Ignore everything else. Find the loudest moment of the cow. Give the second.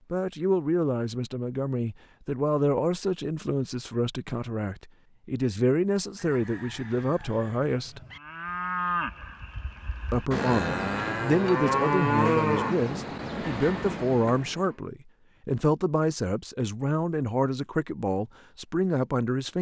12 s.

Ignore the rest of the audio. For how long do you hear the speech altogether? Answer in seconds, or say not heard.
17 s.